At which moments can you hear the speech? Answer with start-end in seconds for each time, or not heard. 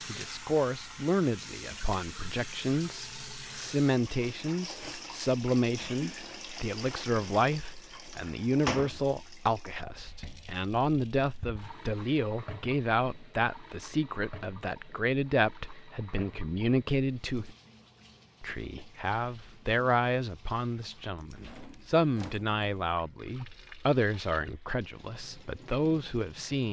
0.1-17.6, 18.4-26.6.